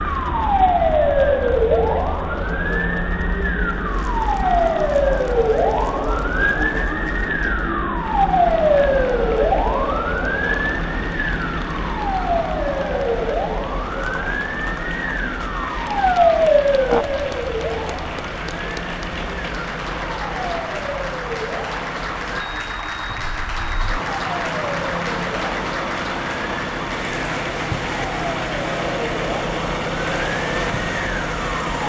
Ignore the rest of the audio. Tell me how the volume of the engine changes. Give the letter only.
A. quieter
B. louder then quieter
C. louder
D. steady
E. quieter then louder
C.